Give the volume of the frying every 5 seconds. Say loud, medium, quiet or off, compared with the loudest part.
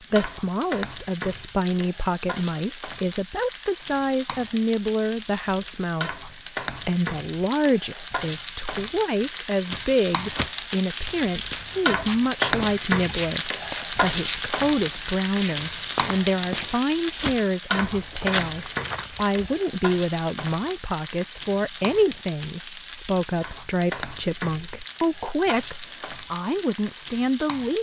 medium, medium, loud, loud, medium, medium.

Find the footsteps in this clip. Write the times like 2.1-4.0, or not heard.
9.7-19.4.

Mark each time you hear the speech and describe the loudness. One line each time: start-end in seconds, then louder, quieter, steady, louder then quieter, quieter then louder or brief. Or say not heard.
0.1-27.7 steady.